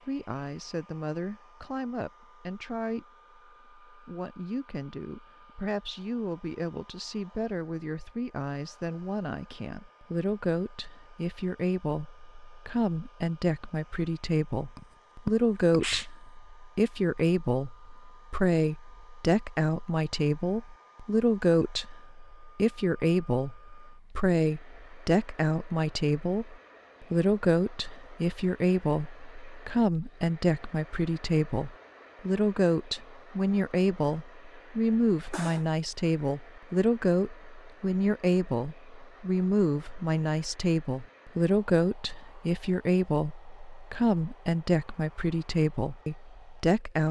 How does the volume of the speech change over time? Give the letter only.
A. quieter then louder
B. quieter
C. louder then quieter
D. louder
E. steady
D.